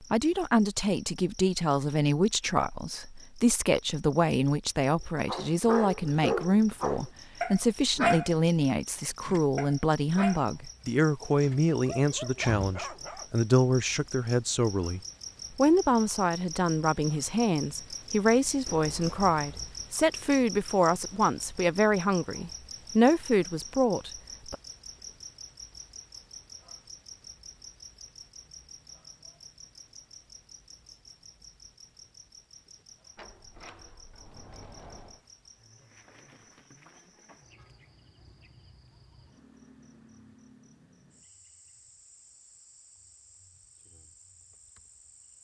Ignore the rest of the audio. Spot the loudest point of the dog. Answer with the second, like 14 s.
8 s.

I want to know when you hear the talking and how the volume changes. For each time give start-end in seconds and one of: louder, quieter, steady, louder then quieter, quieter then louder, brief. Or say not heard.
0.0-24.6 steady.